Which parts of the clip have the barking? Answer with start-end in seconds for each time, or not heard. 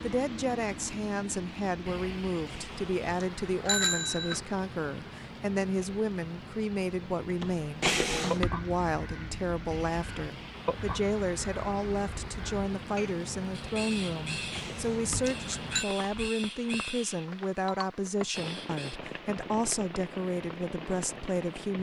not heard.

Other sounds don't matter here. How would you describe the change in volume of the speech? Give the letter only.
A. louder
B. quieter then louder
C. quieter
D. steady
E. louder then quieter
D.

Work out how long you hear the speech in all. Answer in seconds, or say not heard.
22 s.